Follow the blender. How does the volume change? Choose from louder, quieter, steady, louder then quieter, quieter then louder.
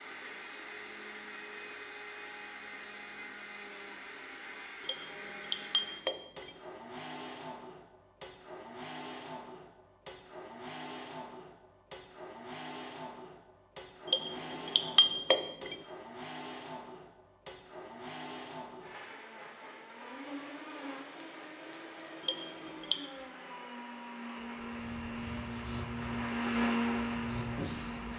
louder.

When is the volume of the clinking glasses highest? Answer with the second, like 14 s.
15 s.